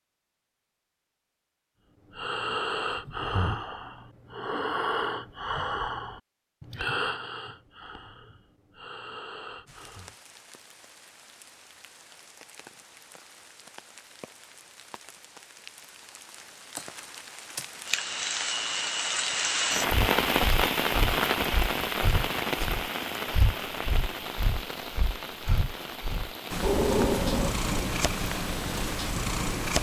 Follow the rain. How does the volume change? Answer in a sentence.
The loudness of the rain goes up, then down.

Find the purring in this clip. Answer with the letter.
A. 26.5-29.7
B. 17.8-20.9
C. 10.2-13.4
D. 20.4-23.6
A.